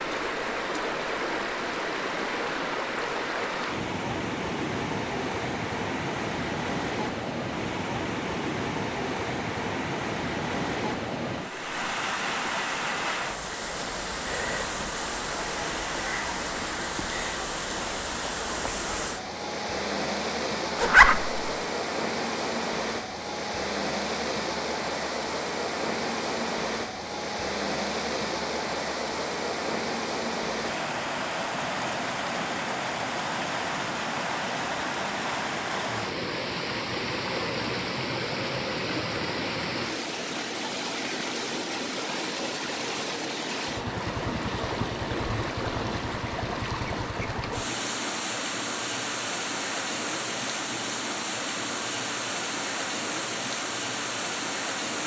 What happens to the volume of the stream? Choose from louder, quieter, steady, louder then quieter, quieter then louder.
steady.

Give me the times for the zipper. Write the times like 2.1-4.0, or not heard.
20.8-21.4.